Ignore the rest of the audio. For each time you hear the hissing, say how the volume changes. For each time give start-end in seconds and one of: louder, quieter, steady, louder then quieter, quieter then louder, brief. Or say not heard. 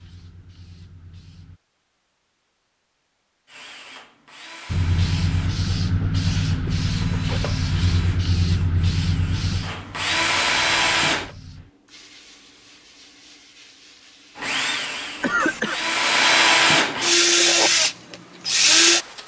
0.0-1.6 brief
4.7-15.8 quieter.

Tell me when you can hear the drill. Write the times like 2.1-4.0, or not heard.
3.5-11.3, 14.3-19.2.